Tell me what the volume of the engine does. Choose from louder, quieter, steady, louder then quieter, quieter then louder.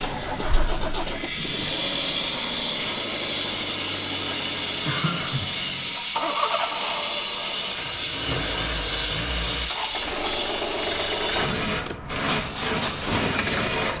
steady.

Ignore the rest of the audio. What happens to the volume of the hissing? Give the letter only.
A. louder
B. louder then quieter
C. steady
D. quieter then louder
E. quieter
C.